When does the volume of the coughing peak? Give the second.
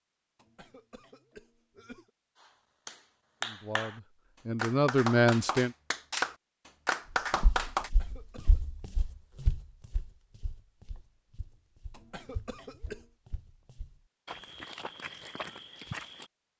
13 s.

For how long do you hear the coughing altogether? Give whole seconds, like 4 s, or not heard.
4 s.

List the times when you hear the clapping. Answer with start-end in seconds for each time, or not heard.
2.4-7.9.